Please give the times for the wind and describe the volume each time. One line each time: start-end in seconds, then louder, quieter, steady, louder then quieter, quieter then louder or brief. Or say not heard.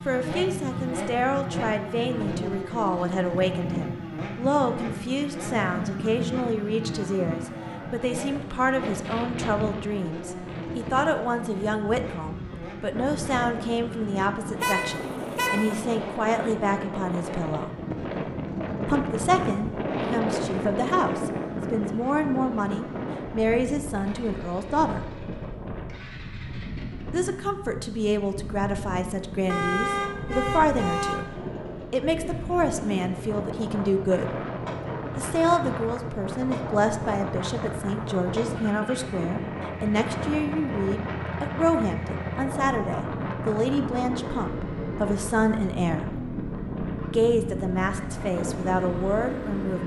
0.0-49.8 steady.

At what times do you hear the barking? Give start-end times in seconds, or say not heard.
not heard.